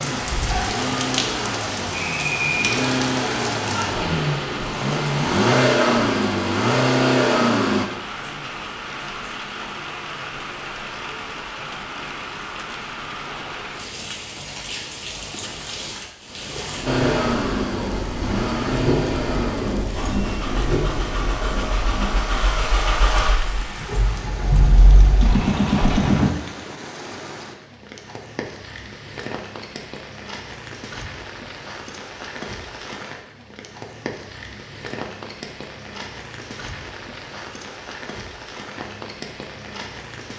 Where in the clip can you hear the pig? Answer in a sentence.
You can't hear the pig here.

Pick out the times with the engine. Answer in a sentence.
You can hear the engine from 0.2 to 7.8 s and from 16.9 to 26.3 s.